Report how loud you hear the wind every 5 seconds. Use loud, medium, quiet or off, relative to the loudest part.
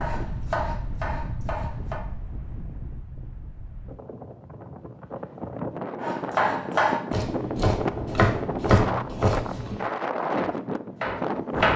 medium, loud, loud.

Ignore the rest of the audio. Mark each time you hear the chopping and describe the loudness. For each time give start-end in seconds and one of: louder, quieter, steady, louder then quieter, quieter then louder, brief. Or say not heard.
0.0-2.0 brief
6.0-11.7 quieter.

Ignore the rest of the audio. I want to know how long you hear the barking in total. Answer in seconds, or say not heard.
not heard.